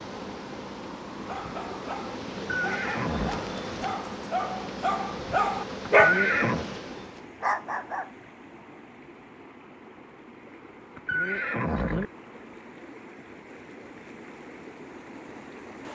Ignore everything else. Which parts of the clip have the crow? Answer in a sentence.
You can't hear the crow here.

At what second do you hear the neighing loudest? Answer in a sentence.
The loudest moment of the neighing is at 6 seconds.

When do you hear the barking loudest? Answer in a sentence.
The loudest moment of the barking is at 6 seconds.